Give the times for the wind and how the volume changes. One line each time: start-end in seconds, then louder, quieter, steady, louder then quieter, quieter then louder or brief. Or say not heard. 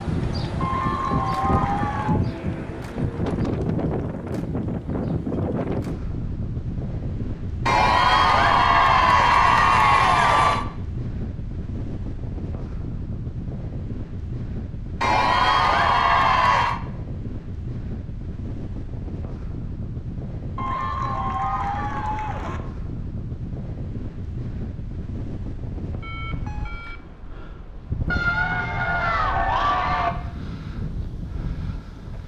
0.0-32.2 quieter.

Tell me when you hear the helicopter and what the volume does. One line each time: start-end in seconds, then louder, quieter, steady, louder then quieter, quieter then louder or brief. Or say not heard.
not heard.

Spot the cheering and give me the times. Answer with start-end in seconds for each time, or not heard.
0.6-2.2, 7.7-10.7, 15.0-16.8, 20.6-22.6, 28.1-30.1.